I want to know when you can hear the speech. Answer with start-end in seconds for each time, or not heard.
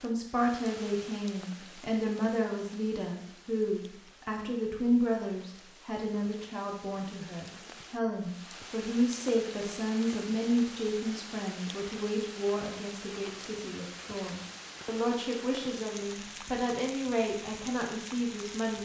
0.0-18.8.